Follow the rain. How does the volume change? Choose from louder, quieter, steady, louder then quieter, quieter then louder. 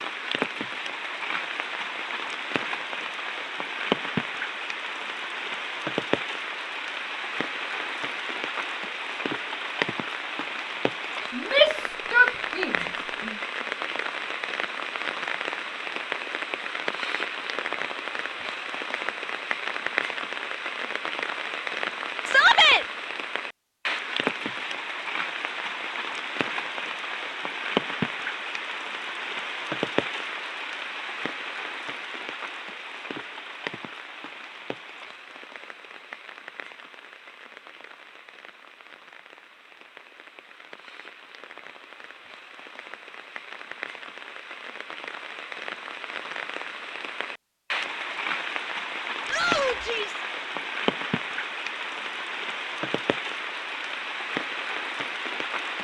quieter then louder.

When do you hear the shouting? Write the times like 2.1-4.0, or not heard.
11.3-12.8, 22.2-22.9, 49.2-50.2.